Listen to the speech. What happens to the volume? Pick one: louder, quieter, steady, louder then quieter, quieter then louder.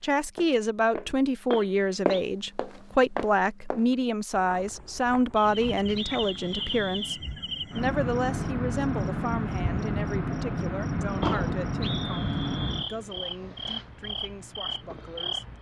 quieter.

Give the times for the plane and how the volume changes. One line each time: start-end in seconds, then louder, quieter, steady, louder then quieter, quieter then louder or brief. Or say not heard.
not heard.